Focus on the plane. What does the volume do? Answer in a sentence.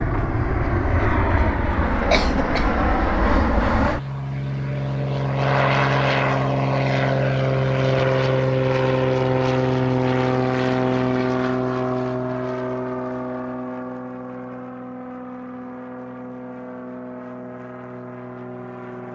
The volume of the plane goes down.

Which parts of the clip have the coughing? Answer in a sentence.
You can hear the coughing from 2.1 to 2.8 s.